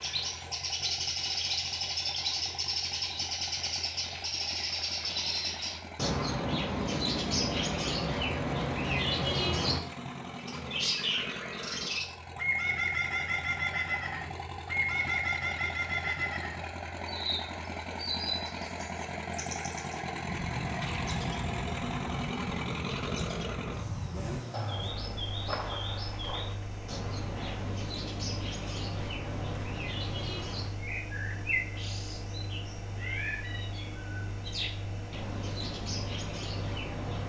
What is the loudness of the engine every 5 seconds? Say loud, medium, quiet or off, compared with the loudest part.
medium, medium, medium, loud, loud, medium, medium, medium.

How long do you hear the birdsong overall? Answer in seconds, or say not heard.
37 s.